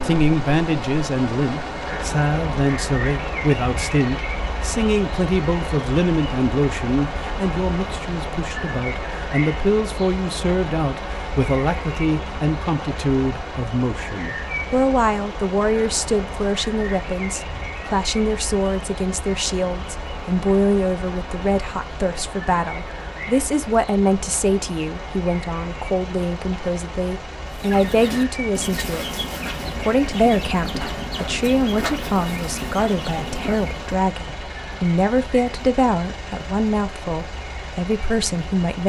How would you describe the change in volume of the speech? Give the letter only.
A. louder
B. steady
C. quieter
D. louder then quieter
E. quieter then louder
B.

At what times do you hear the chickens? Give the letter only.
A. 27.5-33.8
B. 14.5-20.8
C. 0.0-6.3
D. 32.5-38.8
A.